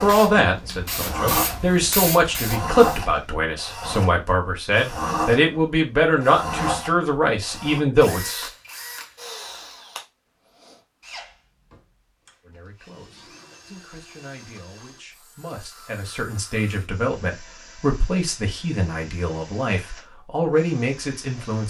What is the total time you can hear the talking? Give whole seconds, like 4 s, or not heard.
18 s.